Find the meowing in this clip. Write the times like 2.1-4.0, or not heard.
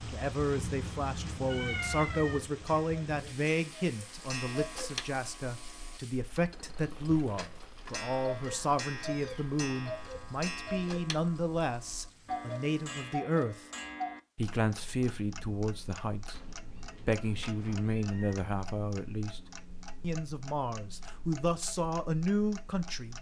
0.4-2.4, 8.4-9.5, 16.3-18.4.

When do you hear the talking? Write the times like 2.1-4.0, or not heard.
0.0-13.7, 14.3-16.4, 17.1-19.4, 20.0-23.1.